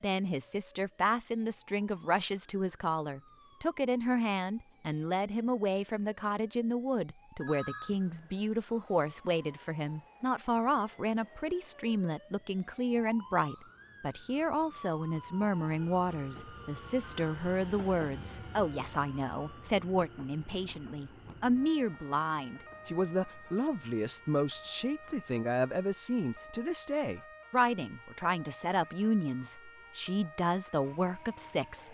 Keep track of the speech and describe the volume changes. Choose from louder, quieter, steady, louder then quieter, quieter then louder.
steady.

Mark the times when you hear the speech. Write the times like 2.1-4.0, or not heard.
0.0-31.8.